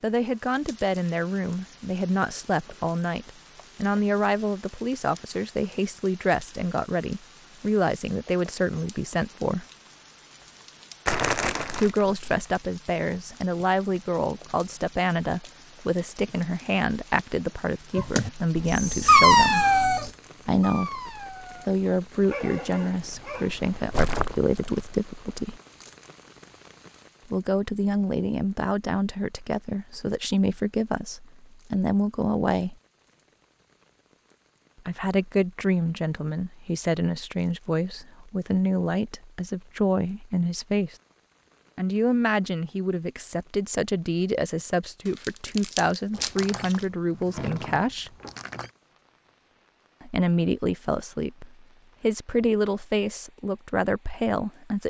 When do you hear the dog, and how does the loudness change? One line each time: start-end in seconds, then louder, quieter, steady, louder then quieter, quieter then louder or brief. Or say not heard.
17.9-23.9 quieter.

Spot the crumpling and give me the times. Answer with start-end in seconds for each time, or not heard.
11.1-12.1, 23.7-24.9, 45.0-46.9.